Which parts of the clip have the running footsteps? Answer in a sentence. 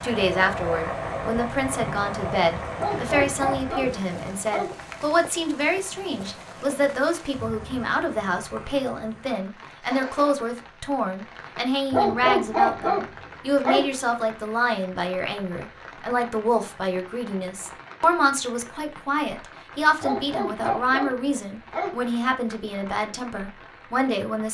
You can't hear the running footsteps here.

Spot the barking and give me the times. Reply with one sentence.
You can hear the barking from 2.8 to 4.8 s, from 11.9 to 13.9 s and from 20.0 to 22.0 s.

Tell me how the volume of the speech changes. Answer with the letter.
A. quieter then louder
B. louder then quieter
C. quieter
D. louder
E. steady
E.